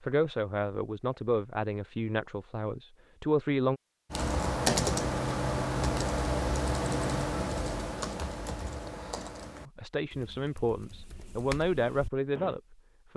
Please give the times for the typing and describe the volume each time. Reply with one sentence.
You can hear the typing from 4.1 to 12.6 s, getting quieter.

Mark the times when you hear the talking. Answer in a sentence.
The talking can be heard from 0.0 to 3.8 s and from 9.7 to 13.1 s.